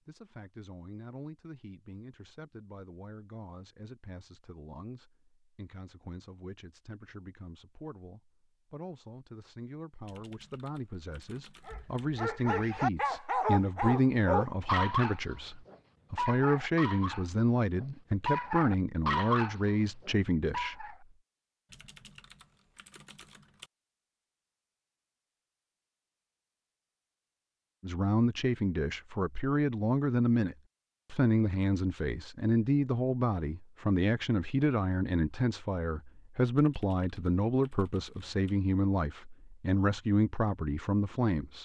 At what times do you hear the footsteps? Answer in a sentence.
You can't hear the footsteps here.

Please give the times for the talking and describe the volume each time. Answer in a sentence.
The talking can be heard from 0.1 to 20.9 s, getting louder; and from 27.8 to 41.6 s, at a steady volume.